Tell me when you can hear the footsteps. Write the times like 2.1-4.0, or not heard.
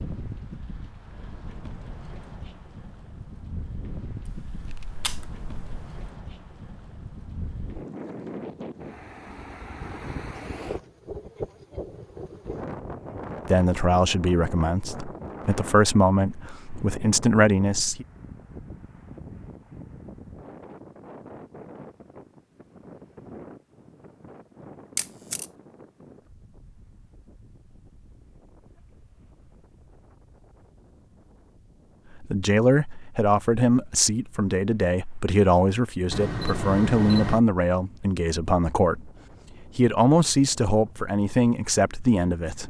not heard.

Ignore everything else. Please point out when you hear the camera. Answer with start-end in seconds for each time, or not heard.
4.2-6.0, 24.9-25.4, 36.1-37.4.